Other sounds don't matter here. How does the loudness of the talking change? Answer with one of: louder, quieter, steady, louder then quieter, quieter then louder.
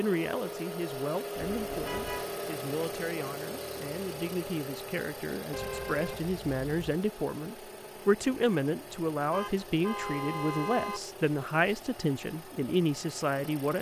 louder.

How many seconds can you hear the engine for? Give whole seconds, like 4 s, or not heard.
14 s.